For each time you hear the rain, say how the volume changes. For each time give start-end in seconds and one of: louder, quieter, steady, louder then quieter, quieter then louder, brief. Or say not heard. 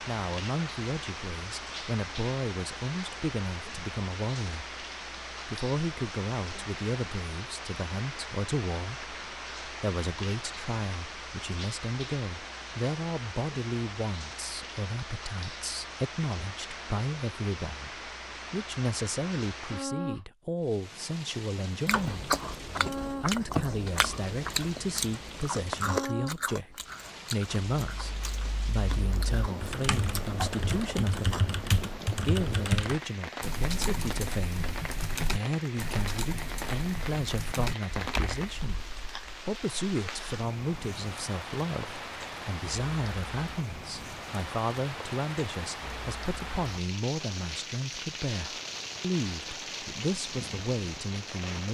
0.0-51.6 steady.